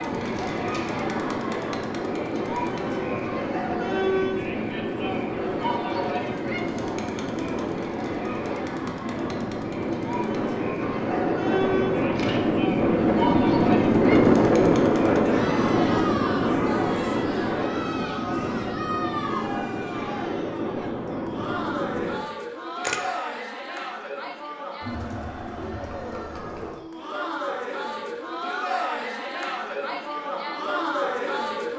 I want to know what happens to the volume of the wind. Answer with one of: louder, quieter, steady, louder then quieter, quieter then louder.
louder then quieter.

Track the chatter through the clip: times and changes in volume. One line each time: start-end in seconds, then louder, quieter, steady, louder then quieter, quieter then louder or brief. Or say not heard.
0.0-31.7 steady.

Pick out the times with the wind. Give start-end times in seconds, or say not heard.
0.0-22.1.